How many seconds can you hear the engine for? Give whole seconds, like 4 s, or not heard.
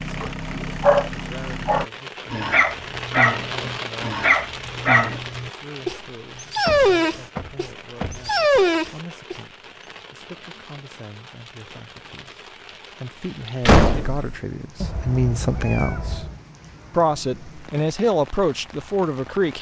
2 s.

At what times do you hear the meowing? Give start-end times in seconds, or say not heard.
14.8-16.4.